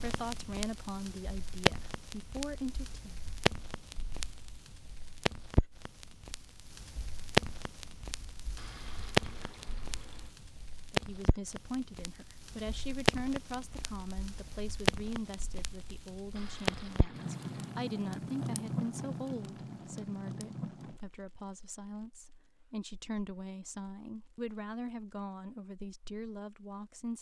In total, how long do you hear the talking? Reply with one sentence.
You can hear the talking for 19 seconds altogether.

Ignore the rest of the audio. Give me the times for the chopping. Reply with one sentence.
The chopping can't be heard in this clip.